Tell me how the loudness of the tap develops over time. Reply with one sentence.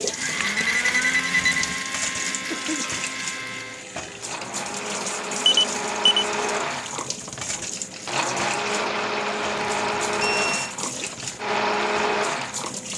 The loudness of the tap stays about the same.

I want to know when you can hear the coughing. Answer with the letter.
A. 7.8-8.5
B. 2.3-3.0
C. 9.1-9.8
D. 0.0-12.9
B.